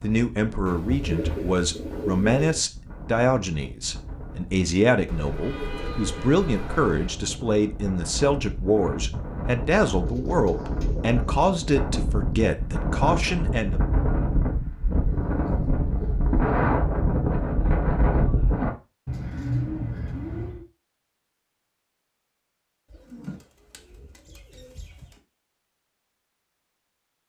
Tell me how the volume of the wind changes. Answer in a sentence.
The loudness of the wind goes up.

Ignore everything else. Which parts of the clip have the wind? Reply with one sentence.
You can hear the wind from 0.0 to 18.7 s.